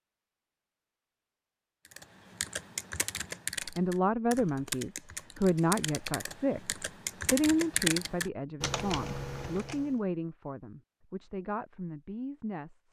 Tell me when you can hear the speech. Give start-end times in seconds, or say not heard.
3.6-12.8.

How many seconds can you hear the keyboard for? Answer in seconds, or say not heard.
8 s.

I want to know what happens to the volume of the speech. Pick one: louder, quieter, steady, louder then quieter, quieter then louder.
quieter.